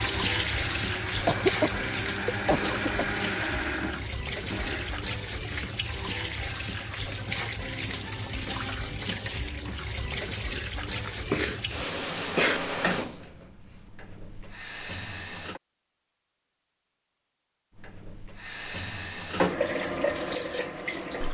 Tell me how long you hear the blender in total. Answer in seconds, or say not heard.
5 s.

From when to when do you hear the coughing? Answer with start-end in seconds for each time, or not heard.
1.2-3.1, 11.0-12.6.